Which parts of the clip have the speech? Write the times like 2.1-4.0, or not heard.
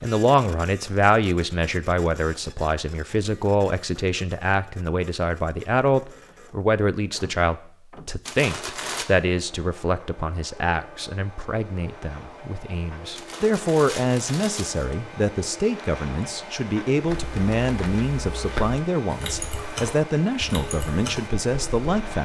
0.0-22.2.